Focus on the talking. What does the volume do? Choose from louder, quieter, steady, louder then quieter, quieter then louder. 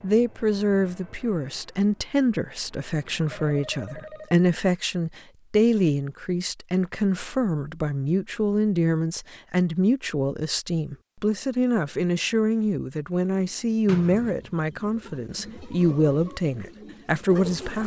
steady.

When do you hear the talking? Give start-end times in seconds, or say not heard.
0.0-17.8.